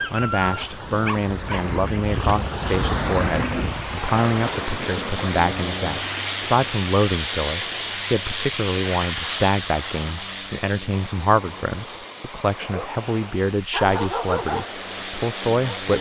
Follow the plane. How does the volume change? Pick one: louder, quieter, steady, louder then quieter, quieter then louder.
quieter then louder.